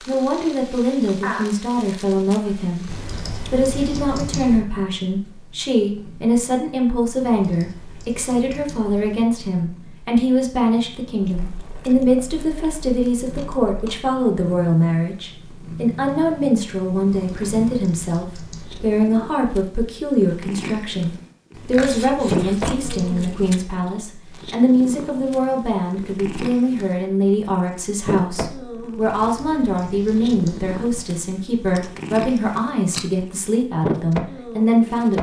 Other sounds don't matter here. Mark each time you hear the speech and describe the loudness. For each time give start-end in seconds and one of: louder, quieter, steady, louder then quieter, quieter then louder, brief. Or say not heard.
0.1-35.1 steady.